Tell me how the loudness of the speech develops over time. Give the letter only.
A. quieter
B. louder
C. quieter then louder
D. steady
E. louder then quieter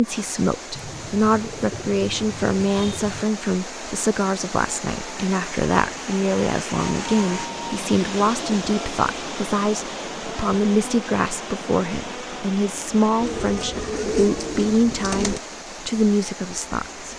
D.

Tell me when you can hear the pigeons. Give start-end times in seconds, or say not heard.
0.7-3.2, 6.8-8.6, 13.2-15.4.